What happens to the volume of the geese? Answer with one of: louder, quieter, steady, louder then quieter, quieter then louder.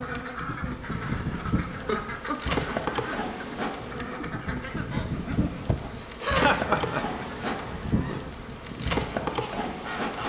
steady.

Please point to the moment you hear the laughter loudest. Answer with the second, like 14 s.
6 s.